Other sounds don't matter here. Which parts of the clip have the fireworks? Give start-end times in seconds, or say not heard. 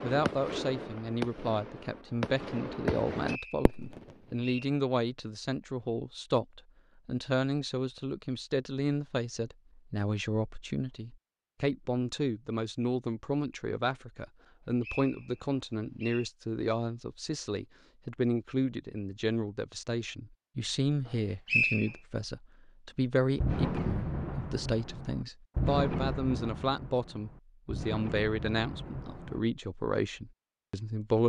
0.0-4.2, 23.4-29.4.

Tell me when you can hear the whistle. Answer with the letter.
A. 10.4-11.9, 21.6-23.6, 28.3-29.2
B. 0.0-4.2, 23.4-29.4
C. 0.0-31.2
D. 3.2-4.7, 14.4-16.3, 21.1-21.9
D.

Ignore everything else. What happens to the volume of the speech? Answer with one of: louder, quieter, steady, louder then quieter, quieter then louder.
steady.